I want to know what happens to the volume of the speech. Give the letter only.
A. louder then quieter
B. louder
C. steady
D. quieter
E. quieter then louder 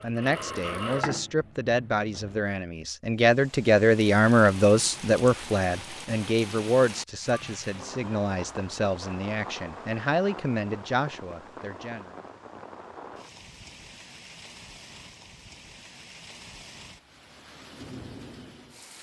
A.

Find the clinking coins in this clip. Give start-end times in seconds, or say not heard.
not heard.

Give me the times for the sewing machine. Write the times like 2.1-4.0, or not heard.
0.0-2.5.